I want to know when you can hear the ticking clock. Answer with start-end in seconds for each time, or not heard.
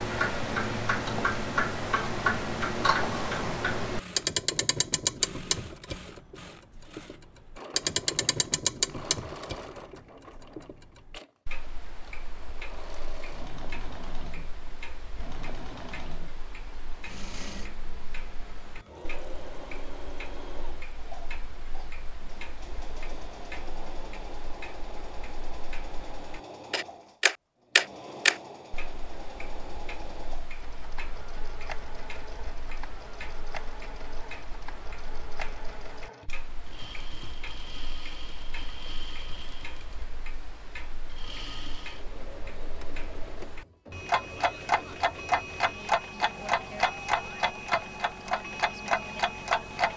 0.0-49.9.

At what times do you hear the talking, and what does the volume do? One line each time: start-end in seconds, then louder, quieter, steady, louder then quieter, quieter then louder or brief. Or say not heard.
not heard.